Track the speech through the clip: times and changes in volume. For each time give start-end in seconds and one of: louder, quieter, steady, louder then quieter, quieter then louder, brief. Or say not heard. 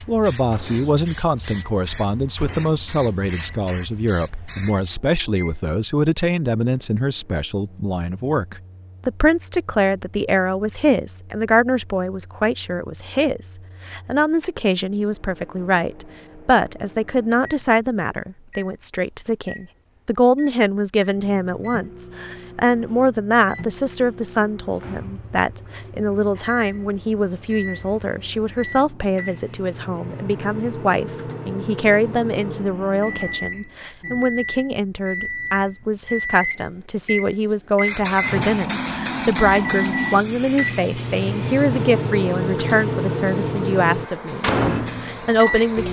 0.1-45.8 steady.